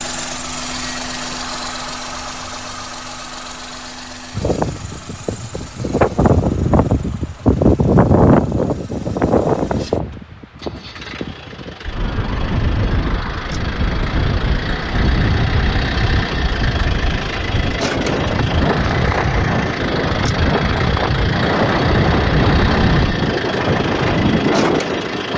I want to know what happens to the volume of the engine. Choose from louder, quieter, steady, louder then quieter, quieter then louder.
quieter then louder.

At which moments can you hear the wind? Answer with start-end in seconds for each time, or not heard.
4.3-25.3.